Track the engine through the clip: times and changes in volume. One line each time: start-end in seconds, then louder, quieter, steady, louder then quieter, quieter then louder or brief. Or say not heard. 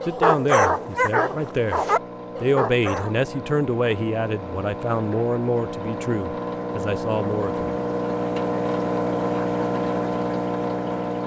0.0-11.2 louder.